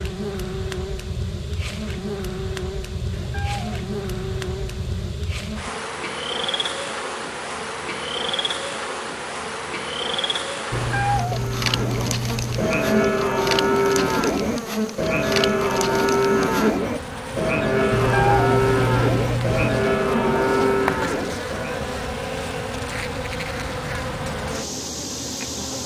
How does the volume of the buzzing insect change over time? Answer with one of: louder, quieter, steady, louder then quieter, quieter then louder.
steady.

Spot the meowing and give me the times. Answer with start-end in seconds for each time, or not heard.
3.1-5.2, 10.7-12.7, 17.9-19.6.